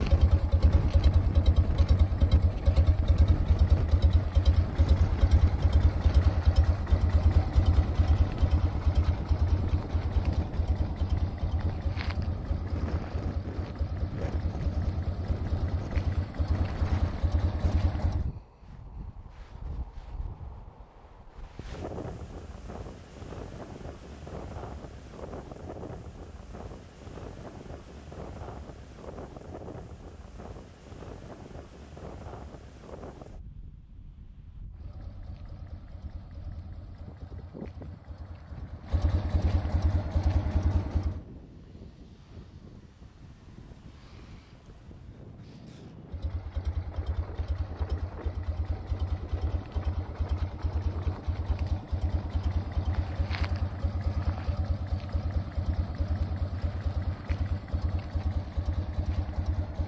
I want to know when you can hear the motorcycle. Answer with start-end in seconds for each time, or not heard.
0.0-18.3, 34.7-41.2, 46.1-59.8.